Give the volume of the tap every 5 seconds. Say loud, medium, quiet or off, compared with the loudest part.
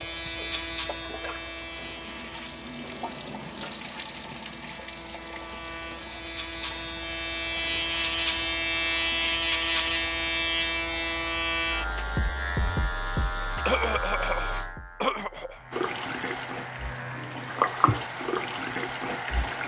medium, quiet, off, loud.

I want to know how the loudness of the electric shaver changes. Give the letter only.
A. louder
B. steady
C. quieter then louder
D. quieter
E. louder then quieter
E.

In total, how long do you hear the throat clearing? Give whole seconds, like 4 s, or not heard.
2 s.